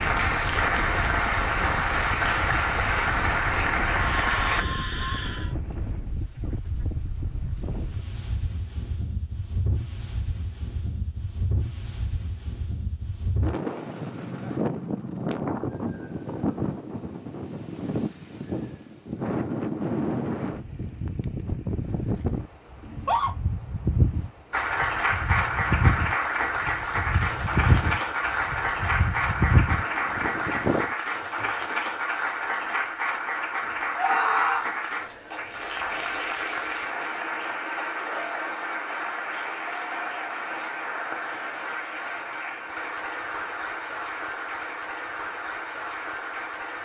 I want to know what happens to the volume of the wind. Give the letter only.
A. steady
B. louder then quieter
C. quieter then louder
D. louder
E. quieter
D.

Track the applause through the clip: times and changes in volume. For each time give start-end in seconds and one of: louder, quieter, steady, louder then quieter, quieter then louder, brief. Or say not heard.
0.0-4.7 steady
24.5-46.8 quieter.